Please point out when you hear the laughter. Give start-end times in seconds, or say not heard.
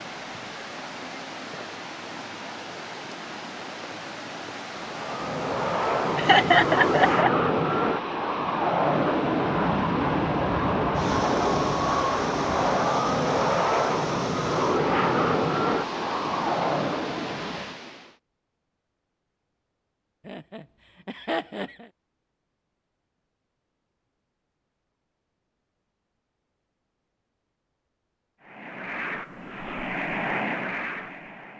6.2-7.3, 20.2-21.9.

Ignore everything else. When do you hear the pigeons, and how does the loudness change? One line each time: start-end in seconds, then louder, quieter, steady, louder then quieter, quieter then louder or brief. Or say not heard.
not heard.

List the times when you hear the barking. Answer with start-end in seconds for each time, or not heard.
not heard.